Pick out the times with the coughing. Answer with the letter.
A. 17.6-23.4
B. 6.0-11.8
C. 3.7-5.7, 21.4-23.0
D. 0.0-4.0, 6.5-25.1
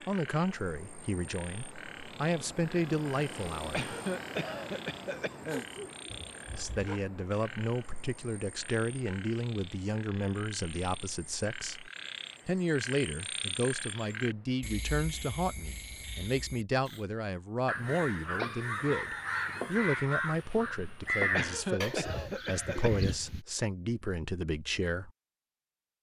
C.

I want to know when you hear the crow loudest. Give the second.
21 s.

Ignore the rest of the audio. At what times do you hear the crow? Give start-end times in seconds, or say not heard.
17.6-23.4.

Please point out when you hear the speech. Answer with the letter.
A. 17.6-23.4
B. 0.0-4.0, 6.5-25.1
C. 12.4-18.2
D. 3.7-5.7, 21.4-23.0
B.